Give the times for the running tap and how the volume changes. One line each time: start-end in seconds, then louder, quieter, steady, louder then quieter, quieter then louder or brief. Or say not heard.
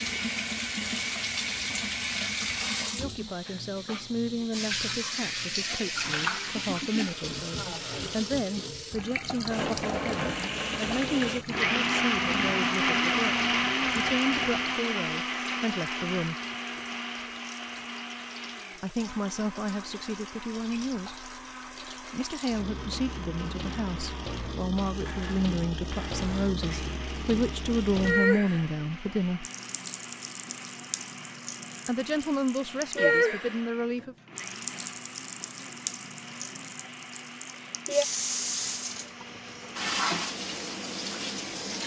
0.0-41.8 quieter then louder.